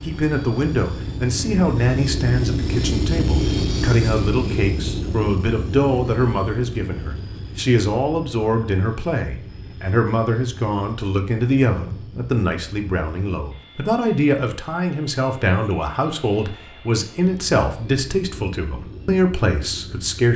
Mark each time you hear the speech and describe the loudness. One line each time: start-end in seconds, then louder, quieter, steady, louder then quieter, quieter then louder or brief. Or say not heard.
0.0-20.3 steady.